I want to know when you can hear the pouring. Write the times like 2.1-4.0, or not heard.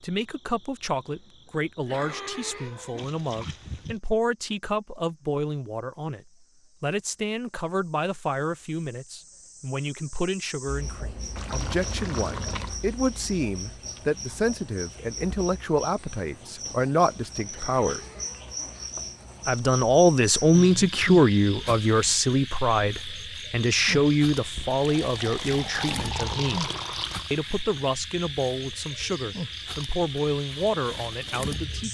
3.0-4.0, 11.3-12.8, 24.6-27.3.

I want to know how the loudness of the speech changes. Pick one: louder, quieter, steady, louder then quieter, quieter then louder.
louder then quieter.